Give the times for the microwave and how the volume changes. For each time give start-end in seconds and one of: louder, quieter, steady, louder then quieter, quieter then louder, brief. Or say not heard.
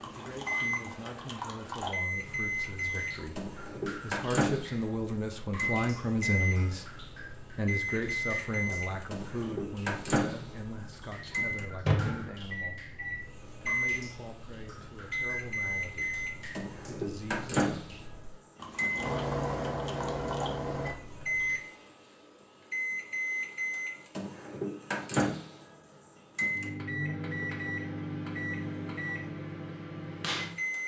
0.4-30.8 steady.